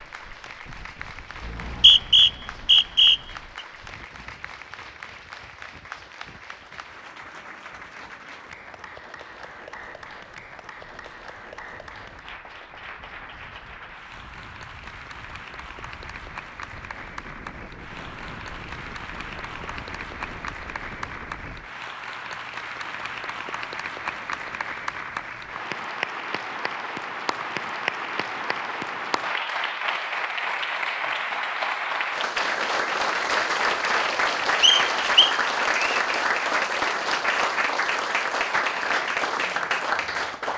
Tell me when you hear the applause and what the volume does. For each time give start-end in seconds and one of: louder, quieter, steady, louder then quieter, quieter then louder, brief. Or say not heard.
0.0-40.5 louder.